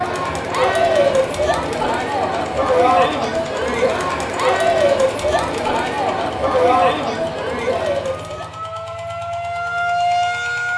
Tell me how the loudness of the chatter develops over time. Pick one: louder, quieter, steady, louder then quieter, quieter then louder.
steady.